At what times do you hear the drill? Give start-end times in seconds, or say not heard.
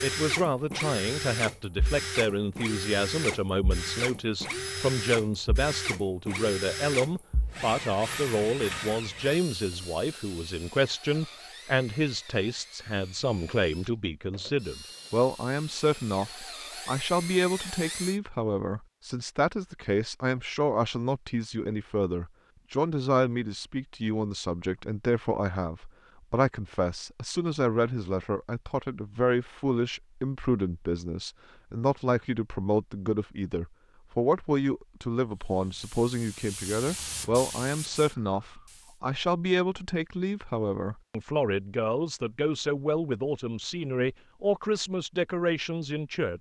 0.0-18.2.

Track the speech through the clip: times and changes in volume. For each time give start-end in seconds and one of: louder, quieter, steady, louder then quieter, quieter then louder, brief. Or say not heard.
0.0-46.3 steady.